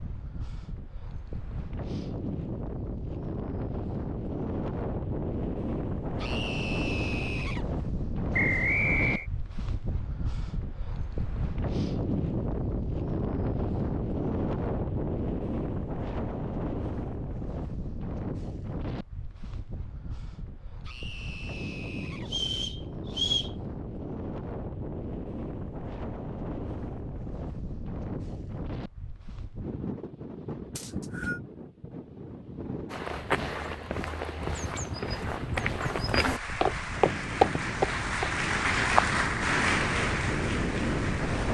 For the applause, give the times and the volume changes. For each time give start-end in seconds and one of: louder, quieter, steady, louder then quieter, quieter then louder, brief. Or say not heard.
36.1-41.4 louder then quieter.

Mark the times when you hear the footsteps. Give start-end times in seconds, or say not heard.
32.9-39.1.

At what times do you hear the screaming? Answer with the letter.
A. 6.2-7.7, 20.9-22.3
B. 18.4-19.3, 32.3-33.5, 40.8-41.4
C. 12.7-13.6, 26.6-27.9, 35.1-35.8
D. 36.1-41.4
A.